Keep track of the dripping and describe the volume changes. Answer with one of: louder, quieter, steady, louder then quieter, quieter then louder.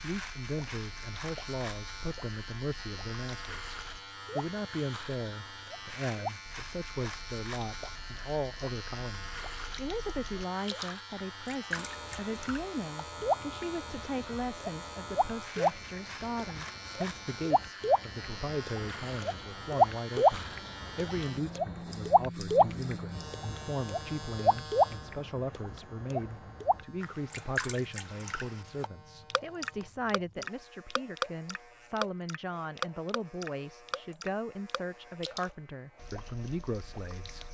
louder then quieter.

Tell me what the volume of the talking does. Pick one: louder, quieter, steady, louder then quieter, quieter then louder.
steady.